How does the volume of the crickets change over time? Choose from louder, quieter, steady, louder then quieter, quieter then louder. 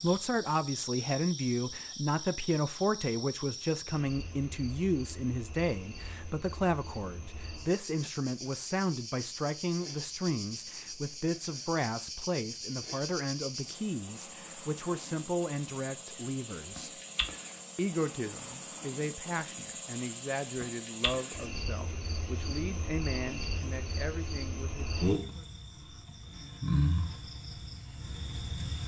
louder.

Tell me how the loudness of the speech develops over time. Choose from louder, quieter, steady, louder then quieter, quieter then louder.
quieter.